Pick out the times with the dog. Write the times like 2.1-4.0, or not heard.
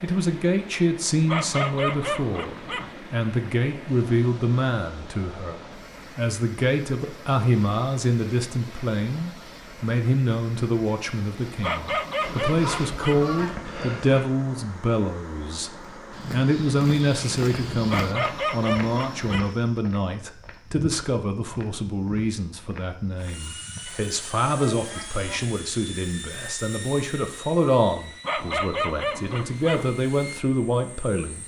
1.2-3.0, 11.6-13.3, 17.9-19.6, 28.2-29.9.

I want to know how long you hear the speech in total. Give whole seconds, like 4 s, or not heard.
31 s.